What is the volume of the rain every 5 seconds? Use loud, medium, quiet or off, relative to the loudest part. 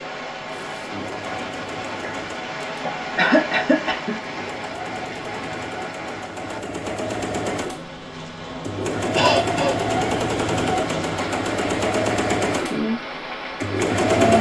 loud, medium, loud.